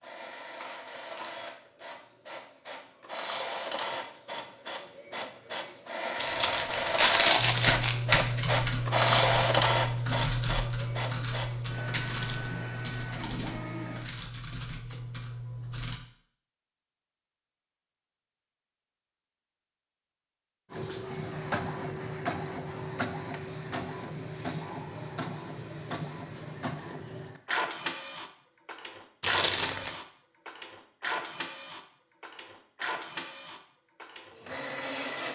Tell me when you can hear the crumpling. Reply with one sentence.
The crumpling can be heard from 6.2 to 8.0 s and from 29.2 to 29.9 s.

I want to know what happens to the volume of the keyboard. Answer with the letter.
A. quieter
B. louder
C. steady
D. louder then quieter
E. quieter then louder
A.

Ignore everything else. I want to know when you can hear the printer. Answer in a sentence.
The printer can be heard from 0.0 to 14.1 s and from 20.7 to 35.3 s.